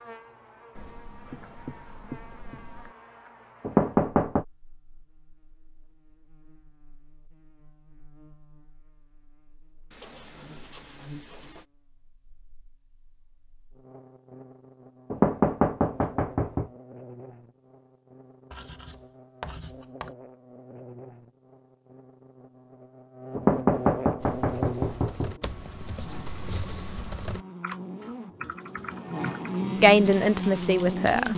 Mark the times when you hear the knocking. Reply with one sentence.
You can hear the knocking from 3.6 to 4.5 s, from 15.1 to 16.7 s and from 23.4 to 25.4 s.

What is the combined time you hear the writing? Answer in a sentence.
The writing can be heard for 7 seconds in total.